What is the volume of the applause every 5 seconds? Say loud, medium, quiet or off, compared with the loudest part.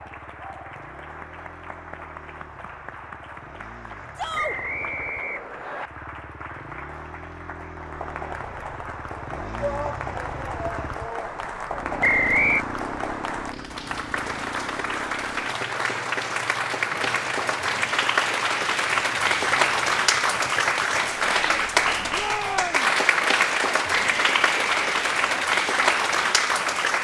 quiet, quiet, medium, loud, loud, loud.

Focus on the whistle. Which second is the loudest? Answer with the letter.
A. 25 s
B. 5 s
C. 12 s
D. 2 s
C.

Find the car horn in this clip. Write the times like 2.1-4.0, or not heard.
not heard.